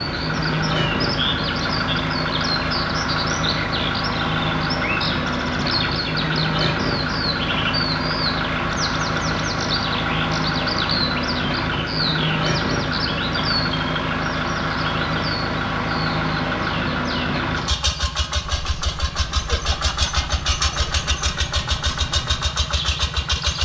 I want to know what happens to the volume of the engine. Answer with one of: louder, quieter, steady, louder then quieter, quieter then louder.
steady.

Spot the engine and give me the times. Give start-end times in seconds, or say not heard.
0.0-23.5.